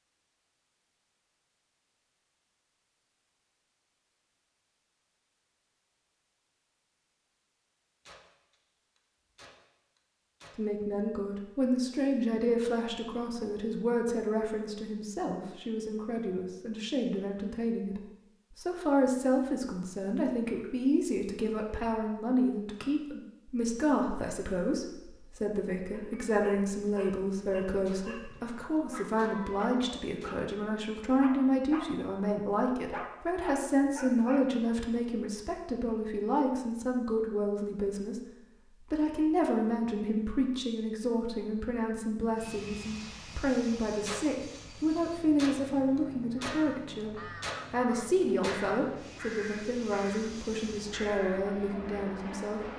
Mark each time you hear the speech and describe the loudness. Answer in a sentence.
You can hear the speech from 10.6 to 52.7 s, at a steady volume.